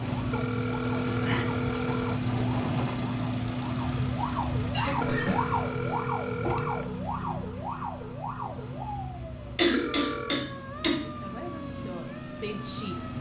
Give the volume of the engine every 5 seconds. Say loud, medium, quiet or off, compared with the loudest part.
loud, medium, medium.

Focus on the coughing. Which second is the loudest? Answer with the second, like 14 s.
10 s.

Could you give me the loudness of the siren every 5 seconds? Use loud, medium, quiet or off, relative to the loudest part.
loud, loud, medium.